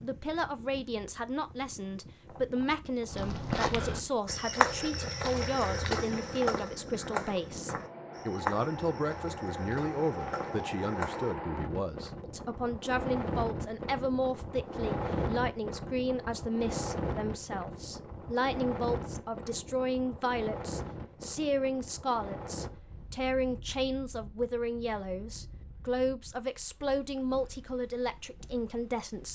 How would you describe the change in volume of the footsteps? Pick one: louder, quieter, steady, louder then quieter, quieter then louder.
quieter.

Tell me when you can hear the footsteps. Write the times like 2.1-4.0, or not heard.
3.1-11.3.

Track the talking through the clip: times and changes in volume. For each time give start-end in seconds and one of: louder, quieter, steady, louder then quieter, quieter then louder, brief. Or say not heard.
0.0-29.3 steady.